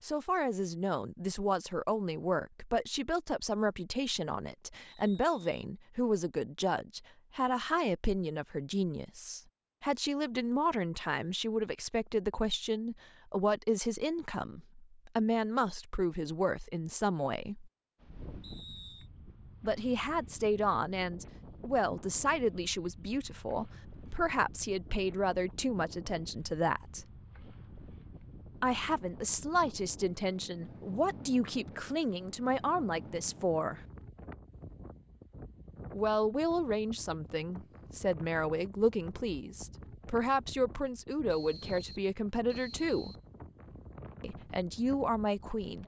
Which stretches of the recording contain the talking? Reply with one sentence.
The talking can be heard from 0.0 to 17.7 s, from 19.6 to 27.1 s, from 28.6 to 33.8 s, from 35.9 to 43.1 s and from 44.2 to 45.8 s.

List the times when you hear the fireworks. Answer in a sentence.
You can't hear the fireworks here.